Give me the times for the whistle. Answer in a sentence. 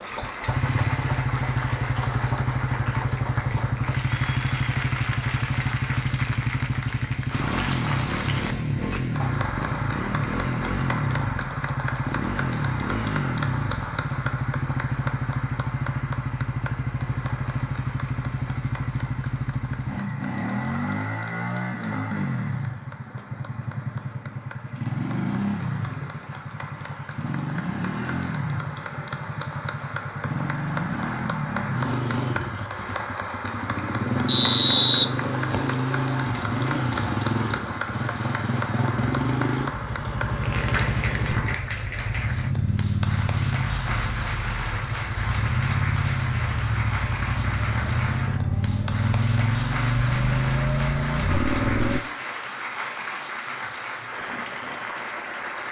You can hear the whistle from 34.2 to 35.8 s.